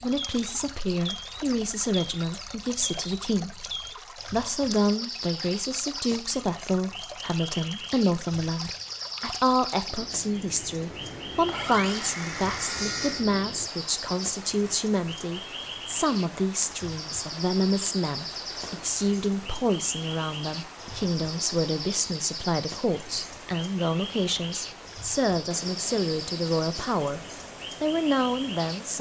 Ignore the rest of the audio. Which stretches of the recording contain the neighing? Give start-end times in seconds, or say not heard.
not heard.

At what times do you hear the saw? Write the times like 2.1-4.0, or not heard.
11.4-13.2.